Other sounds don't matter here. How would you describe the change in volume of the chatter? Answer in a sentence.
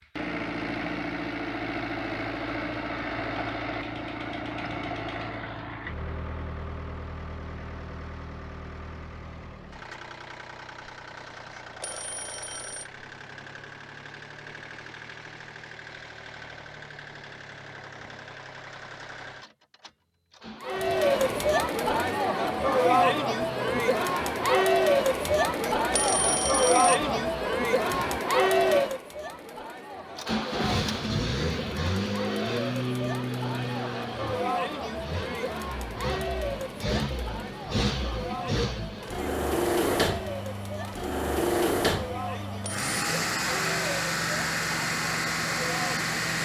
The loudness of the chatter goes down.